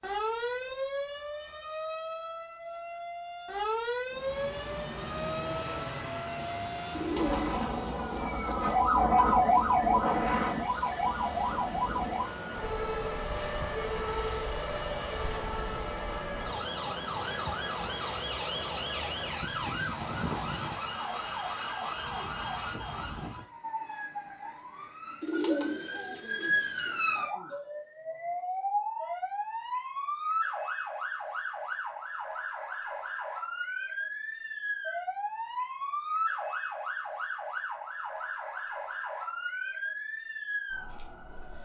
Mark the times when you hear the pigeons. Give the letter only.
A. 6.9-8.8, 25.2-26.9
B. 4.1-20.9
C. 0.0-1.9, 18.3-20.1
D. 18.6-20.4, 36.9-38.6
A.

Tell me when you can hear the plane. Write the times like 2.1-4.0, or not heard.
4.1-20.9.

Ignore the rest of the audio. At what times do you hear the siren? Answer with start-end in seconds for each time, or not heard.
0.0-41.6.